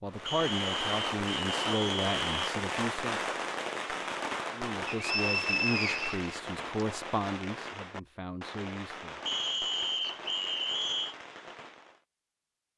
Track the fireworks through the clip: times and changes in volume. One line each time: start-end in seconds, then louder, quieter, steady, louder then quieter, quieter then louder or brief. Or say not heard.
0.1-12.0 quieter.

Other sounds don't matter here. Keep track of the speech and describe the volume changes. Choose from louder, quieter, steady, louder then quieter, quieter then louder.
quieter.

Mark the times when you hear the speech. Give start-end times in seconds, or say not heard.
0.0-3.2, 4.5-9.2.